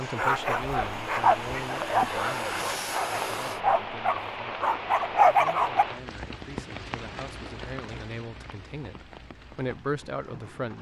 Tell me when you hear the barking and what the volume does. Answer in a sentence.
You can hear the barking from 0.1 to 5.8 s, getting quieter then louder.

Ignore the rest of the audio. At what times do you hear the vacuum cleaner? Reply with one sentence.
The vacuum cleaner can be heard from 0.0 to 3.6 s.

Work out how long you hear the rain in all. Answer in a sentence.
You can hear the rain for 11 seconds altogether.